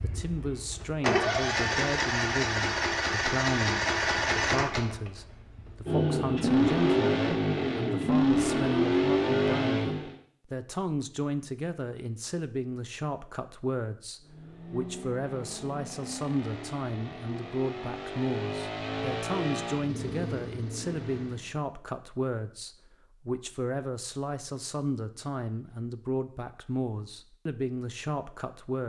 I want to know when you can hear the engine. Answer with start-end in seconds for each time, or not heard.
0.0-10.2, 14.2-21.7.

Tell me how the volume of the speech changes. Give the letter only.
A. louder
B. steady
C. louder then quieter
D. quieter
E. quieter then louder
B.